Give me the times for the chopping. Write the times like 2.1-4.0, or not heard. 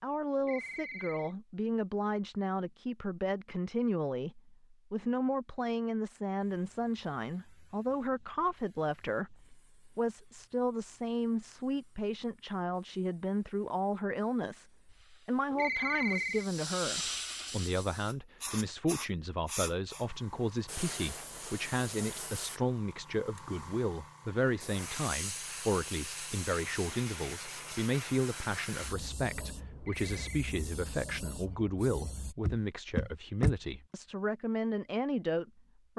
not heard.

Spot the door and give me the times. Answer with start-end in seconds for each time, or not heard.
32.4-33.5.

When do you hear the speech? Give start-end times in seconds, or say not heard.
0.0-35.9.